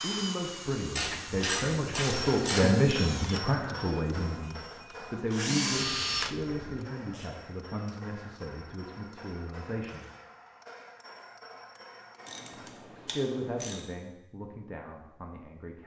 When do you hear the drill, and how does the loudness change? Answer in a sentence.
The drill can be heard from 0.0 to 6.8 s, getting quieter then louder.